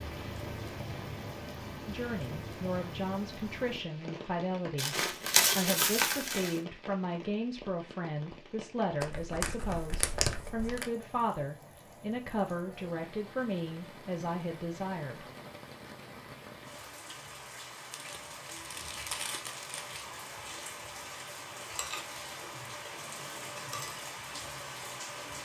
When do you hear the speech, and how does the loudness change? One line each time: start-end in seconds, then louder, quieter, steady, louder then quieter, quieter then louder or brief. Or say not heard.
1.9-15.2 steady.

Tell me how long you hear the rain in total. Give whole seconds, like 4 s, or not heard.
25 s.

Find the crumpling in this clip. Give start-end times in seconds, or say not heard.
4.8-6.5, 9.0-10.8, 17.9-20.0.